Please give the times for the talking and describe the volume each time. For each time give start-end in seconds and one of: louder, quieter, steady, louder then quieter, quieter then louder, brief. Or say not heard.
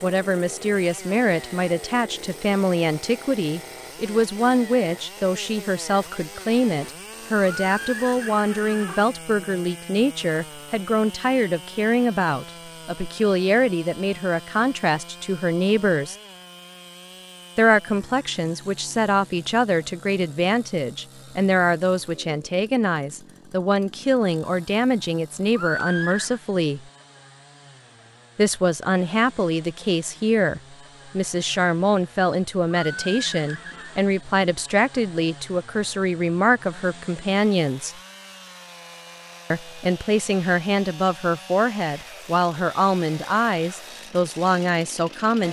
0.0-16.1 steady
17.6-26.8 steady
28.4-38.0 steady
39.5-45.4 steady.